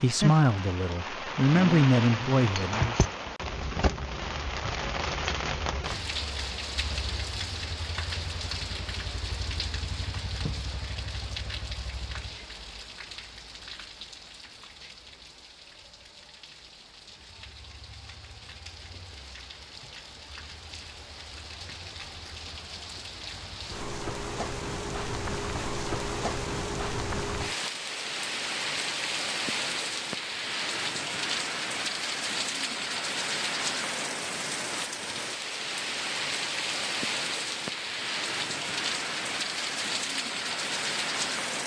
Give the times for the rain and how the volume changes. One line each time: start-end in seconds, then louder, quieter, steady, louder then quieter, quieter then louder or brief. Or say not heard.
0.0-41.6 quieter then louder.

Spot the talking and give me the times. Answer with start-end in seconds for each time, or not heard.
0.0-3.0.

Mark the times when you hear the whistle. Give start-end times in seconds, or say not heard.
not heard.